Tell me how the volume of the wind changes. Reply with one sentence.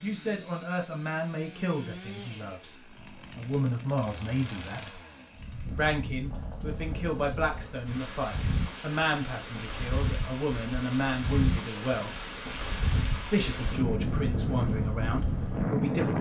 The volume of the wind goes up.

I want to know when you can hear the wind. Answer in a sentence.
You can hear the wind from 5.3 to 16.1 s.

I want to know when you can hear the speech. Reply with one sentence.
The speech can be heard from 0.0 to 5.0 s, from 5.8 to 12.1 s and from 13.3 to 16.1 s.